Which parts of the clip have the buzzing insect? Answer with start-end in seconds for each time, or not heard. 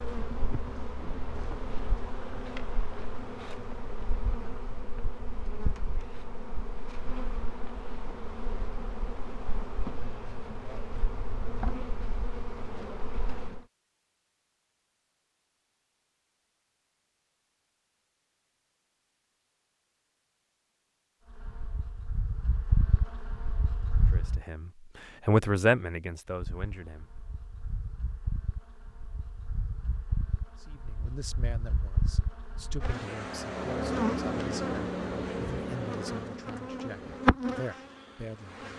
0.0-13.6, 21.3-24.4, 26.2-38.7.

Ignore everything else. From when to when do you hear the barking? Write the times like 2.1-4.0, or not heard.
not heard.